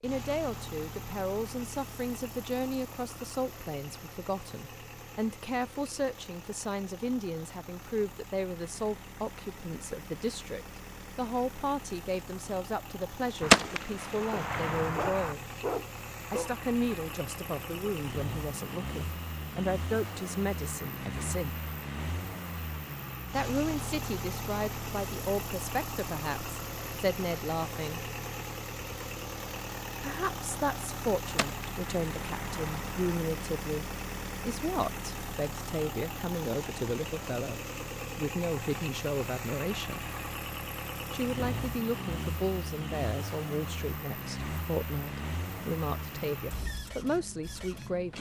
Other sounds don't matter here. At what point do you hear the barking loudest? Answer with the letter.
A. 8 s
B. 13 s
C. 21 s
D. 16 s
D.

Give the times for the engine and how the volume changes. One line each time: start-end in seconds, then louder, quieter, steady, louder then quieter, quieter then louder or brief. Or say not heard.
0.0-48.1 louder.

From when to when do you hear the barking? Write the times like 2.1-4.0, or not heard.
14.3-16.5.